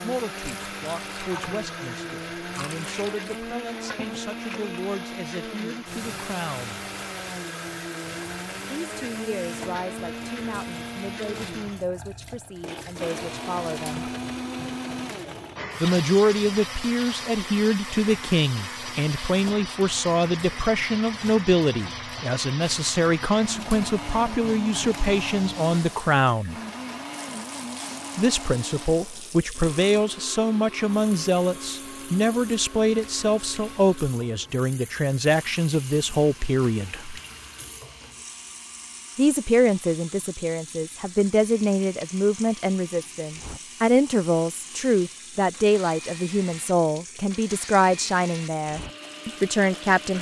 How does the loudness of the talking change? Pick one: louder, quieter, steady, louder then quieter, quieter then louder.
louder.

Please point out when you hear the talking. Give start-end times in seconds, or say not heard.
0.0-6.8, 8.7-14.1, 15.8-26.6, 28.1-37.2, 39.1-50.1.